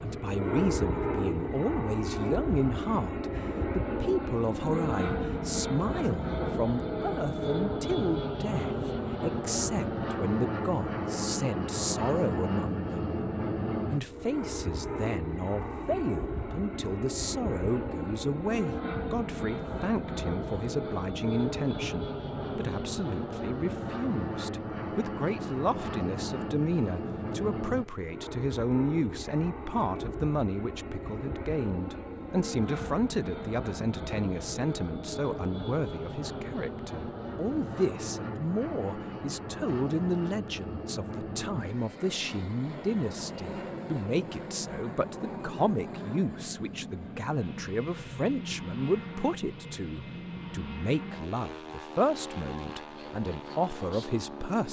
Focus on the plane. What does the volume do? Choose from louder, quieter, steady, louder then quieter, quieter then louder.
quieter.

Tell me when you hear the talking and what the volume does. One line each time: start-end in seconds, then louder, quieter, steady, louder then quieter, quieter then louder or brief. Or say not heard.
0.0-13.2 steady
13.8-54.6 steady.